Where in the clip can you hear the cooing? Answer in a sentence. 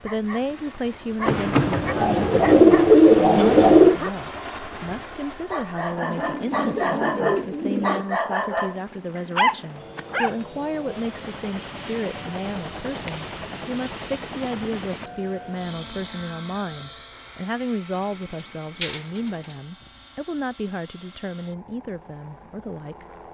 The cooing can be heard from 1.2 to 4.0 s, from 6.0 to 8.1 s, from 12.4 to 14.5 s and from 17.9 to 19.6 s.